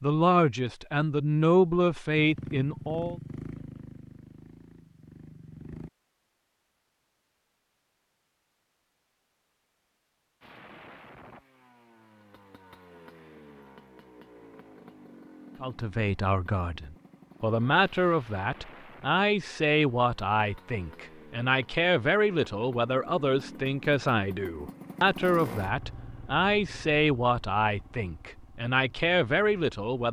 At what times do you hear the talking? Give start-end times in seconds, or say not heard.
0.0-3.1, 15.6-30.0.